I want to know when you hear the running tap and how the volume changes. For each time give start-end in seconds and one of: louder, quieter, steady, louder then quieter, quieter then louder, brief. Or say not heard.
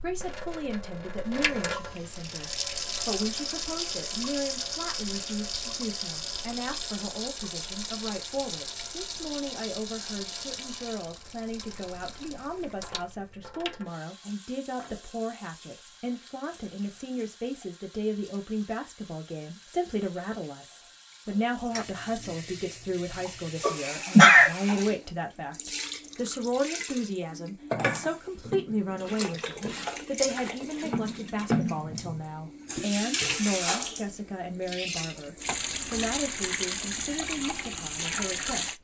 0.0-38.7 quieter then louder.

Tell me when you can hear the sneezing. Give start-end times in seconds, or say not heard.
23.6-24.5.